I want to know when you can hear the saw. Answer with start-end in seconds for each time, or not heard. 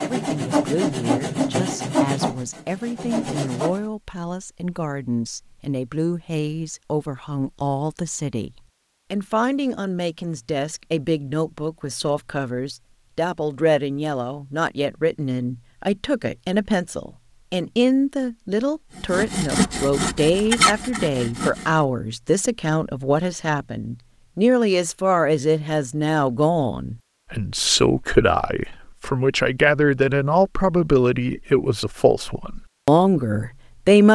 0.0-3.8, 18.9-21.8.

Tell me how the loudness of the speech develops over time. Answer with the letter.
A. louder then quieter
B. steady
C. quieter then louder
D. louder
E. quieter
D.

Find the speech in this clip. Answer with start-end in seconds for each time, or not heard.
0.0-34.0.